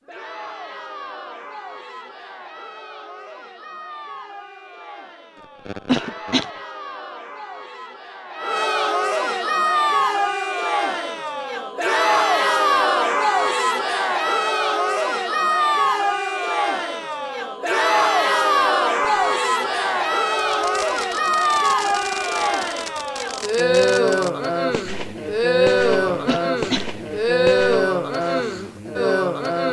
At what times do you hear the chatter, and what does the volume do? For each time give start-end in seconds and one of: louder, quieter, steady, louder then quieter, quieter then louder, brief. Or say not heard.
0.0-29.6 louder.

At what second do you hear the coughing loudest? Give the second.
6 s.